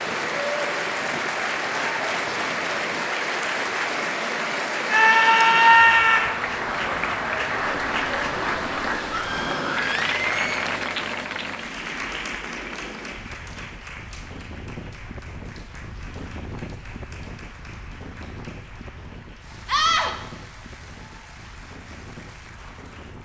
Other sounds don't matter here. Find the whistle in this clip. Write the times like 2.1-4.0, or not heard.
not heard.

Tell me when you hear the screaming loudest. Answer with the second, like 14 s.
6 s.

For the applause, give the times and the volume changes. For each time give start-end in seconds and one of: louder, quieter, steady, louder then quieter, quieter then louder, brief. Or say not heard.
0.0-23.1 quieter.